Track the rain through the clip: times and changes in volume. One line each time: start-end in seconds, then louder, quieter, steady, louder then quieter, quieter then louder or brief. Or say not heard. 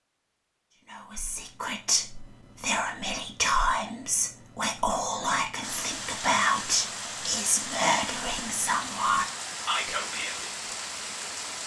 5.6-11.6 steady.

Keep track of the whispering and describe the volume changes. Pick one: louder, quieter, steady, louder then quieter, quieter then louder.
steady.